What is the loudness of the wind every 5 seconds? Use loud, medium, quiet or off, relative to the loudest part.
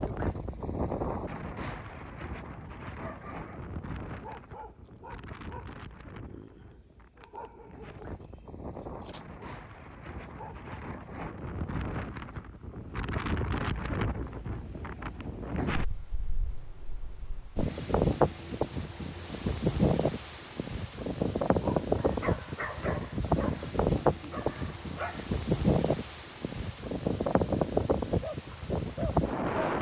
medium, quiet, medium, loud, loud, loud.